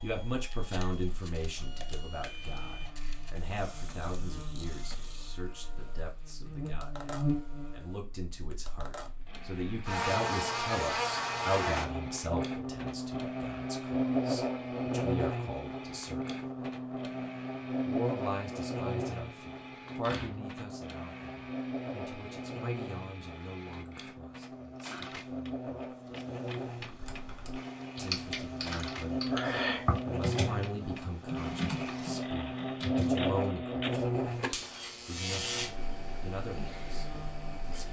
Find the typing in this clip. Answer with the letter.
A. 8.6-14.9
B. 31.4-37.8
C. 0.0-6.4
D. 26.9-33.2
D.